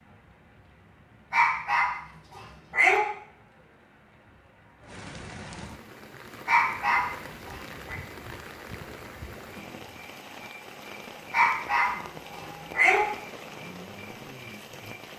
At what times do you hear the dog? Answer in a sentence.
You can hear the dog from 1.3 to 3.0 s, from 6.5 to 8.0 s and from 11.3 to 13.0 s.